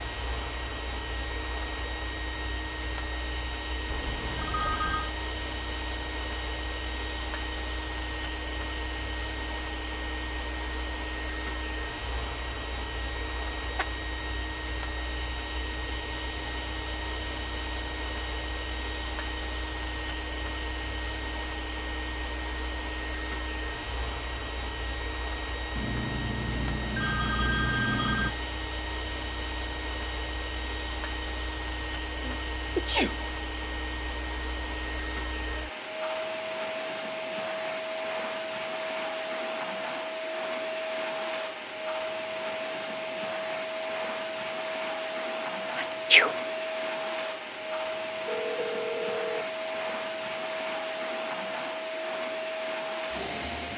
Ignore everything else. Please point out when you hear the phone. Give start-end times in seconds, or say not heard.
3.9-5.2, 25.8-28.4, 48.2-49.5.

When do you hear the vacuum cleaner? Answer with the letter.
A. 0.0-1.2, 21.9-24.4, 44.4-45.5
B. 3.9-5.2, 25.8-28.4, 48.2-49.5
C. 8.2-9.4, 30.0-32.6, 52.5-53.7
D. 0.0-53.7
D.